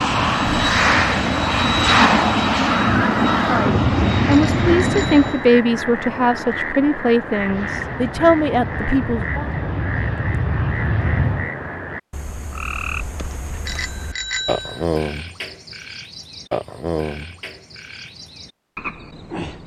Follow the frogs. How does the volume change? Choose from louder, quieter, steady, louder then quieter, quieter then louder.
steady.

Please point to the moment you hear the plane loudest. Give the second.
2 s.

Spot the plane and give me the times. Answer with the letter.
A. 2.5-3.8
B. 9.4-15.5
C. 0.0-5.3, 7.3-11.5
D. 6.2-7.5
C.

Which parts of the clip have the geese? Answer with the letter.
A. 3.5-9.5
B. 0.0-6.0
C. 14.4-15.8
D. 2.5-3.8
D.